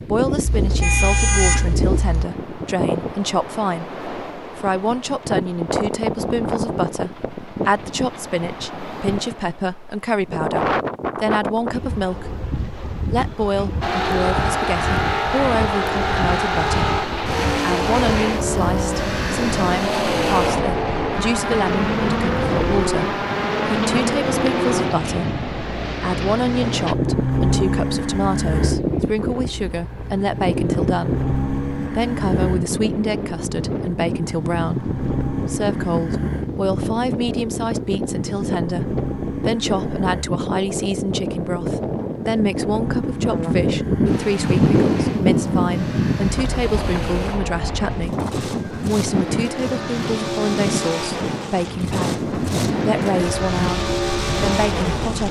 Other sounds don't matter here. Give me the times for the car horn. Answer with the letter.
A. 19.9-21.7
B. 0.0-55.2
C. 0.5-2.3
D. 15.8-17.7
C.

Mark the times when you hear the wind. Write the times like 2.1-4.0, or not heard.
0.0-55.2.